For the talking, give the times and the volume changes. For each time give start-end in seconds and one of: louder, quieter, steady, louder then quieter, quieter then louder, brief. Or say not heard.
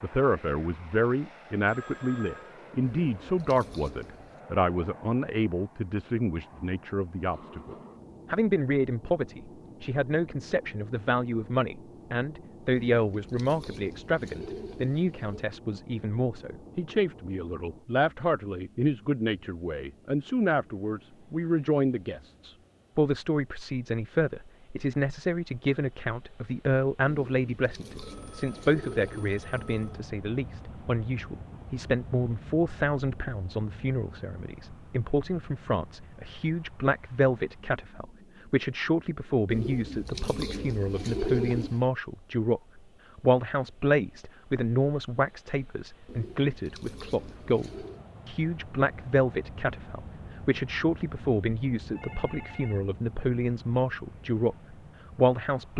0.0-55.7 steady.